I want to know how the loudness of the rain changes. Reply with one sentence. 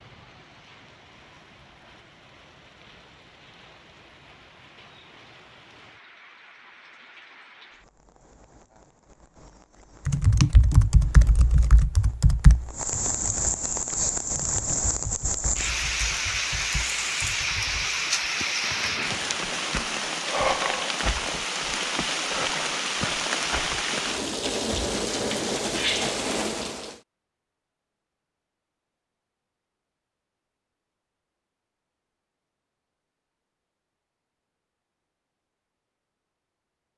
The volume of the rain goes up.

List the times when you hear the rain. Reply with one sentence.
You can hear the rain from 0.0 to 27.0 s.